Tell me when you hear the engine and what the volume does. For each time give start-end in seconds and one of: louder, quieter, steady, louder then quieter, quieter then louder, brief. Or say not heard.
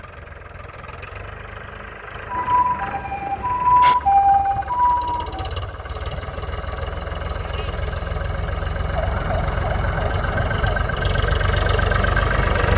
0.0-12.7 louder.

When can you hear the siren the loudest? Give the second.
4 s.